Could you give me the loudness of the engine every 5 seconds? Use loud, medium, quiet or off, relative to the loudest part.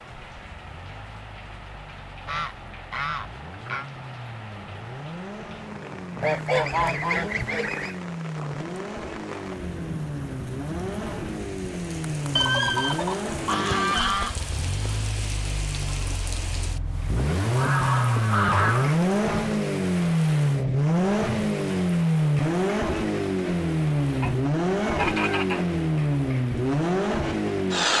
quiet, quiet, medium, loud, loud, loud.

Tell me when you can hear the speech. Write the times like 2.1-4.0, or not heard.
not heard.